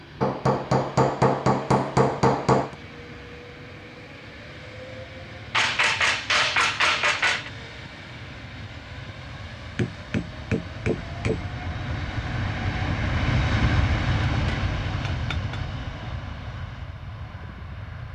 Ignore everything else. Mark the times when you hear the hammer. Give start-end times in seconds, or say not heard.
0.2-2.8, 5.5-7.5, 9.8-11.4, 14.3-15.7.